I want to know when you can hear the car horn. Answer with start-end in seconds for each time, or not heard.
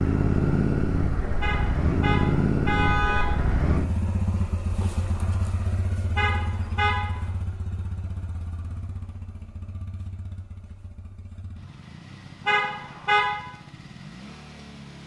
1.4-3.2, 6.2-7.0, 12.4-13.3.